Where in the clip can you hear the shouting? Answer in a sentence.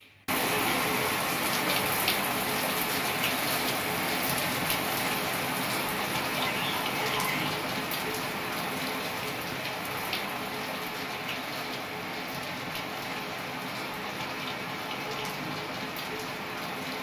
The shouting can be heard from 6.3 to 7.5 s.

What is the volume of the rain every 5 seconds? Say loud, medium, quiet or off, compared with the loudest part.
loud, loud, medium, medium.